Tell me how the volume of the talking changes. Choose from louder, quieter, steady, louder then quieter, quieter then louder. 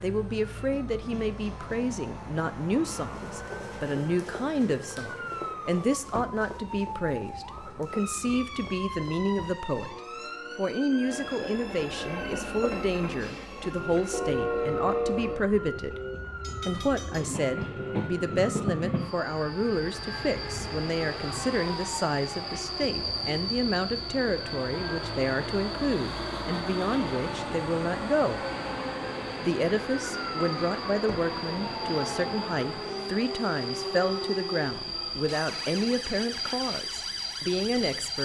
steady.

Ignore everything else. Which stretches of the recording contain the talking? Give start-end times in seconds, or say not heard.
0.0-9.9, 10.6-16.0, 16.6-28.4, 29.4-38.2.